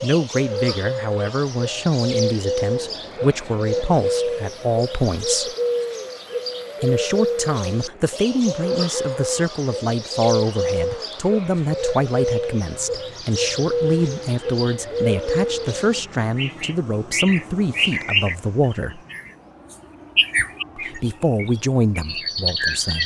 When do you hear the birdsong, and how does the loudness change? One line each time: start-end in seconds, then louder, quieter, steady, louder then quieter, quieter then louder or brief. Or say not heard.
0.0-23.0 steady.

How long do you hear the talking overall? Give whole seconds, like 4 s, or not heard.
20 s.